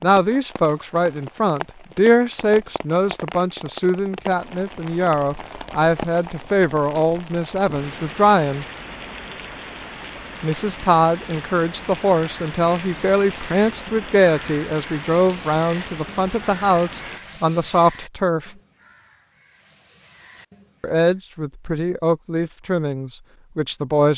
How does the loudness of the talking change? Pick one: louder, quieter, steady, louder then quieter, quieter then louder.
steady.